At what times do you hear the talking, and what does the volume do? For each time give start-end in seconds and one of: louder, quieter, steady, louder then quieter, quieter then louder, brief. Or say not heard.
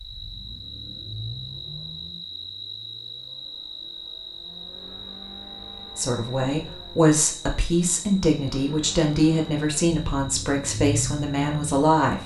6.0-12.2 steady.